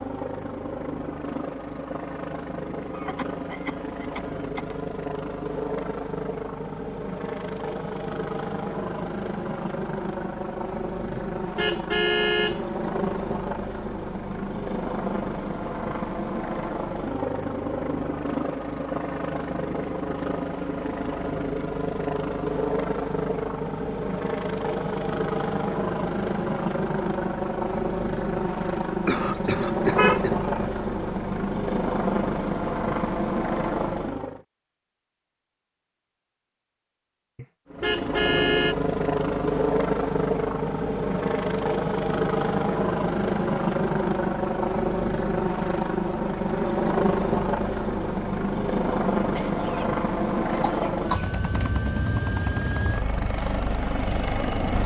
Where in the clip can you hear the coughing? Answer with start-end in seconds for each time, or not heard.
2.9-4.8, 29.1-30.4, 49.4-51.7.